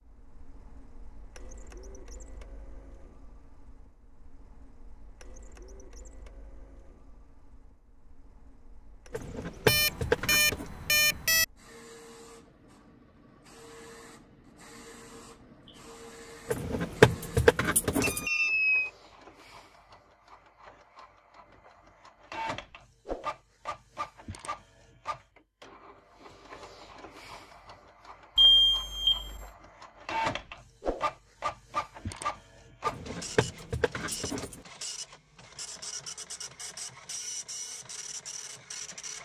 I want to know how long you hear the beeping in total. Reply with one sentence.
The beeping can be heard for 4 seconds in total.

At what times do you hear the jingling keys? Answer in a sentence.
The jingling keys can be heard from 9.1 to 10.7 s, from 16.5 to 18.2 s and from 32.9 to 34.6 s.